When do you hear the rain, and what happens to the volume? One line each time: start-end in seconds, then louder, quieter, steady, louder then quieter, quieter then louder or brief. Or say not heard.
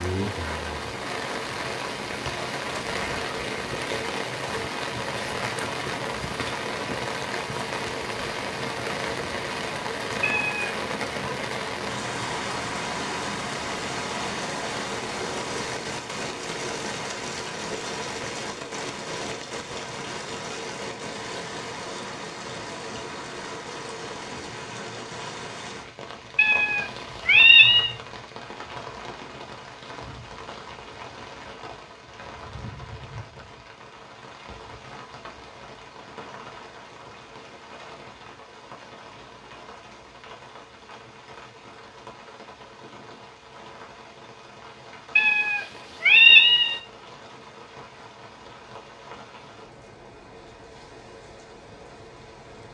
0.0-52.6 quieter.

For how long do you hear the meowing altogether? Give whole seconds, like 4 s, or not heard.
4 s.